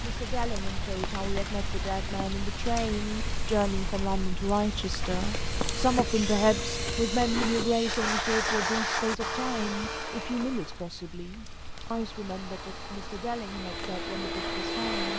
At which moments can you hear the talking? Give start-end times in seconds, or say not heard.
0.0-15.1.